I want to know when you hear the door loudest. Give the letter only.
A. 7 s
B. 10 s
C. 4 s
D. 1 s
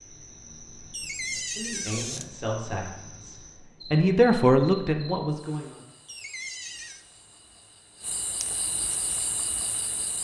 D.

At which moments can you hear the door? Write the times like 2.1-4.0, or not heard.
0.9-2.3, 6.0-7.0.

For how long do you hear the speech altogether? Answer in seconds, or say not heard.
4 s.